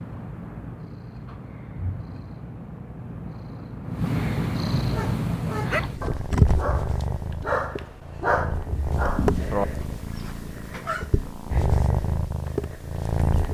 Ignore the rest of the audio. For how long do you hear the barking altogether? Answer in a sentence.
The barking can be heard for 6 seconds in total.